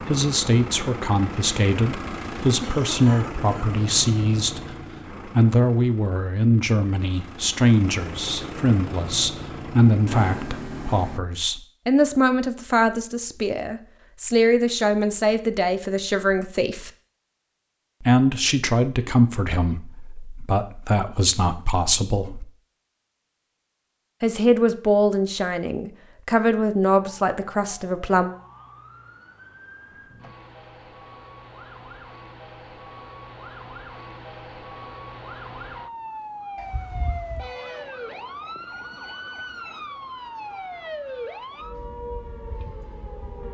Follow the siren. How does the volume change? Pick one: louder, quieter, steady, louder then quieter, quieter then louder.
louder.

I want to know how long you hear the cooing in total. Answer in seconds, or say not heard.
not heard.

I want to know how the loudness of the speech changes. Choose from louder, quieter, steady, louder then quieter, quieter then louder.
steady.